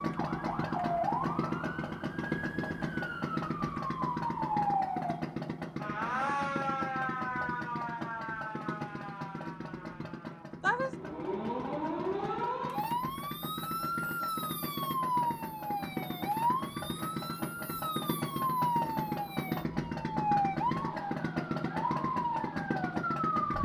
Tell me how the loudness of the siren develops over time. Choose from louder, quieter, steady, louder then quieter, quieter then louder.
steady.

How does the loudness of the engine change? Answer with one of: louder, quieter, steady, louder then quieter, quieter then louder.
quieter then louder.